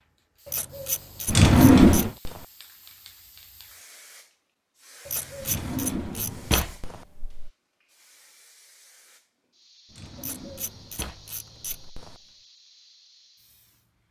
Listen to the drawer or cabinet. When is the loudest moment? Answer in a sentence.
The loudest moment of the drawer or cabinet is at 2 seconds.